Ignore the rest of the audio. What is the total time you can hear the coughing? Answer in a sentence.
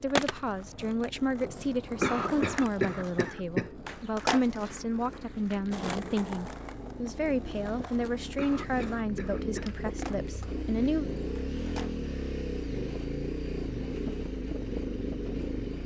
You can hear the coughing for 3 seconds altogether.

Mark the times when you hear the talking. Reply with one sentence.
The talking can be heard from 0.0 to 11.1 s.